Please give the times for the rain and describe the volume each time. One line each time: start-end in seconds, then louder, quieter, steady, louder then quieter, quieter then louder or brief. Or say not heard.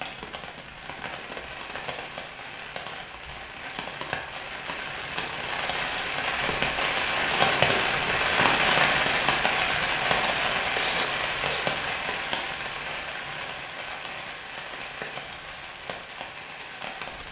0.0-17.2 louder then quieter.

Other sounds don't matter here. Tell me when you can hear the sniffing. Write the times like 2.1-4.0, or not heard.
10.7-11.7.